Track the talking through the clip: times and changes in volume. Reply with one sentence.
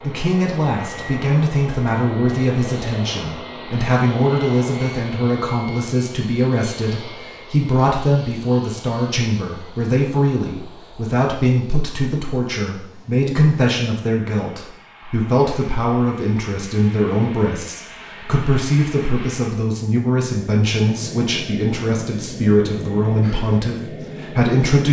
You can hear the talking from 0.0 to 24.8 s, at a steady volume.